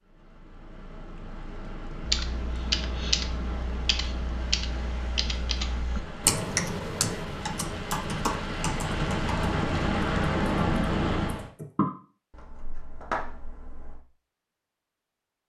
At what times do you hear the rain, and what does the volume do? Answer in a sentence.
You can hear the rain from 0.0 to 11.5 s, getting louder.